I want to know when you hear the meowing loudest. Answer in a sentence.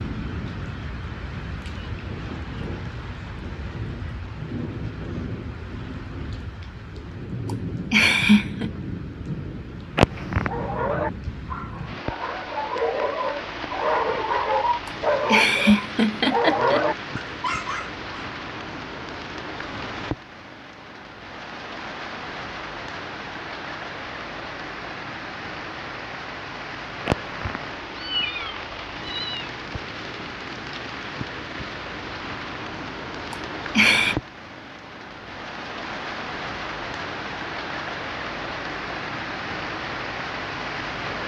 The volume of the meowing peaks at 10 seconds.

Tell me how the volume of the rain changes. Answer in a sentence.
The volume of the rain stays about the same.